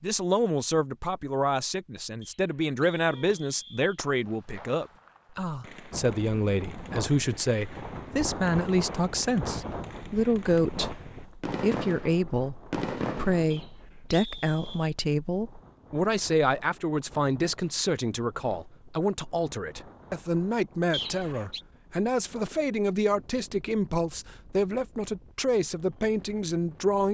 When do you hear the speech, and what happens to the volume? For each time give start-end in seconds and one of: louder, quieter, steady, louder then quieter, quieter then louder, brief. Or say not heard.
0.0-27.0 steady.